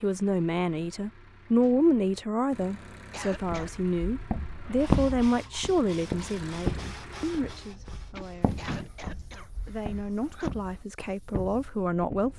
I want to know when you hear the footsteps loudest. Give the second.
5 s.